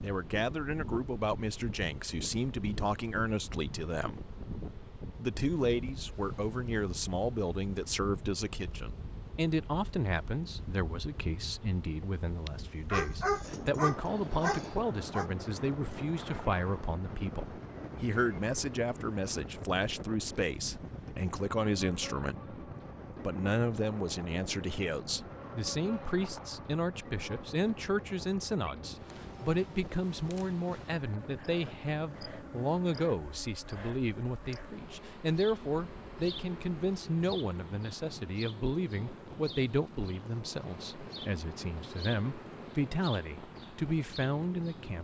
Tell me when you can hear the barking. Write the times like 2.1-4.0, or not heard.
12.4-15.3.